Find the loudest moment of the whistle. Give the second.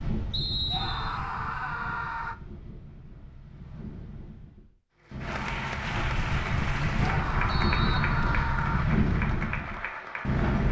1 s.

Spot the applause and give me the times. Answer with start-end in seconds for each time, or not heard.
5.0-10.6.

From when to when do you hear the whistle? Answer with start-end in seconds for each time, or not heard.
0.3-1.2, 7.5-8.6.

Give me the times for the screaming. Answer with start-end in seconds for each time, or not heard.
0.7-2.4, 7.0-8.8.